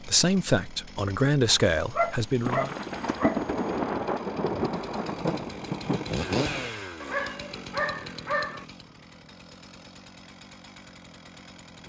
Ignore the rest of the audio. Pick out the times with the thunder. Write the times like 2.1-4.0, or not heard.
2.4-6.7.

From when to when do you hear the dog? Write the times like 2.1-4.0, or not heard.
1.4-3.7, 7.0-8.7.